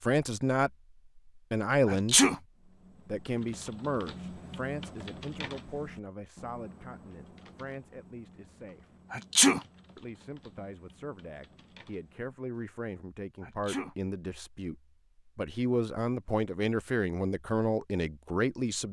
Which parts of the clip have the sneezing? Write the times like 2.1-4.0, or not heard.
1.9-2.4, 9.1-9.6, 13.4-13.9.